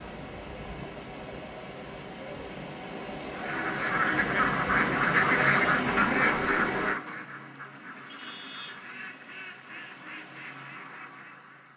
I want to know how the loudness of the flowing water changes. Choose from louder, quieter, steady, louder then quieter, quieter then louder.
louder.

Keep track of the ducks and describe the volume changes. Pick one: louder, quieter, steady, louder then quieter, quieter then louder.
quieter.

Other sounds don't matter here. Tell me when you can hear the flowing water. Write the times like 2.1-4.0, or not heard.
0.0-7.0.